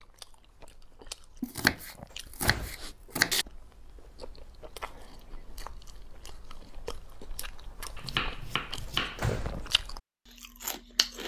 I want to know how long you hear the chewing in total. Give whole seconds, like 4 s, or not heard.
11 s.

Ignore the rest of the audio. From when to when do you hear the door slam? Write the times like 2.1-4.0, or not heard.
2.1-3.0, 8.8-9.7.